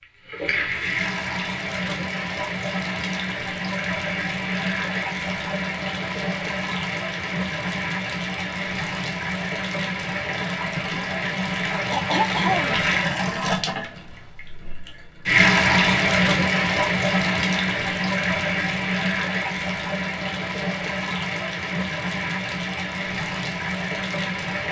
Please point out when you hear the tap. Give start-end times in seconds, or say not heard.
0.0-24.6.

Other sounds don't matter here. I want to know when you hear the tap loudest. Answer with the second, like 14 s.
16 s.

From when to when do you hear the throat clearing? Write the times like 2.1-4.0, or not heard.
11.9-13.3.